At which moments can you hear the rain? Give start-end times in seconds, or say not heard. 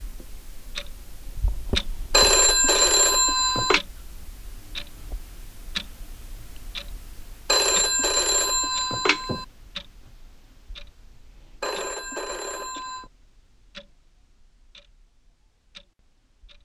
not heard.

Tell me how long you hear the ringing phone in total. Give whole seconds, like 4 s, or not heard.
5 s.